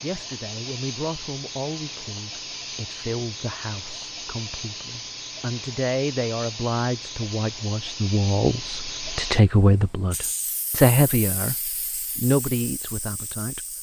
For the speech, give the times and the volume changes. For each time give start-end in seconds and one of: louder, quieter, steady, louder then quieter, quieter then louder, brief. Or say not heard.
0.0-13.7 louder.